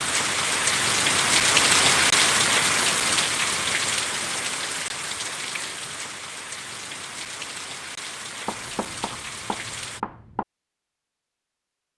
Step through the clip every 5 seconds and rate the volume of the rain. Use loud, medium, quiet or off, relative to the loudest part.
loud, quiet, off.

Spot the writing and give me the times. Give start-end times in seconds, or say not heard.
8.4-10.4.